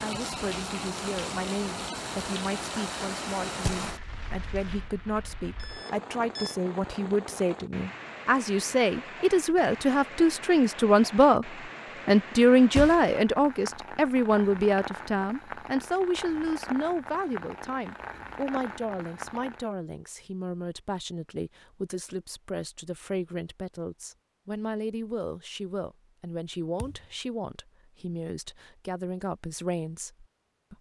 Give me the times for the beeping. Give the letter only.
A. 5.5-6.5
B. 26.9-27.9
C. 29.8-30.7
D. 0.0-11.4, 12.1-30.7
A.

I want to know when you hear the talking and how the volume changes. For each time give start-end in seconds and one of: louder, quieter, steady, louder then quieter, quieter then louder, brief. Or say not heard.
0.0-11.4 louder
12.1-30.7 quieter.